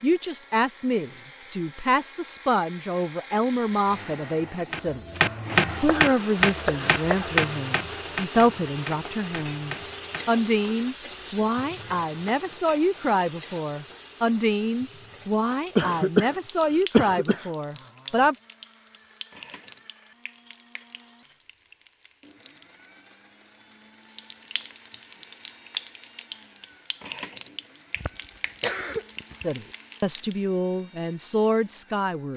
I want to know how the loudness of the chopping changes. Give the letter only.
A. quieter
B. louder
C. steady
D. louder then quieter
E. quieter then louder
A.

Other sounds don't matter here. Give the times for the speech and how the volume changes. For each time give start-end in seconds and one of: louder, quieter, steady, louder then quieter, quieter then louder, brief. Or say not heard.
0.0-18.4 steady
29.4-32.3 brief.